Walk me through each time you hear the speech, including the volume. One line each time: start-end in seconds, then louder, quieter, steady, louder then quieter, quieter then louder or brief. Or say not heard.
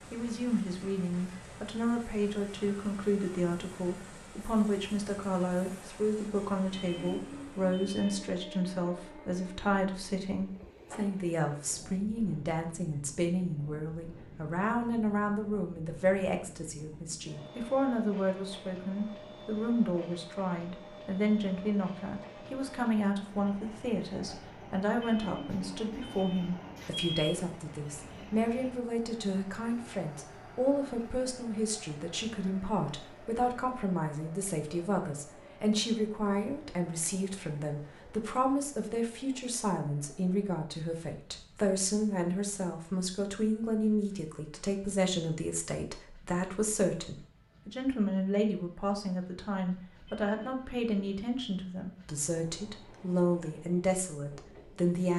0.1-55.1 steady.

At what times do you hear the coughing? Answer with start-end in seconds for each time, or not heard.
not heard.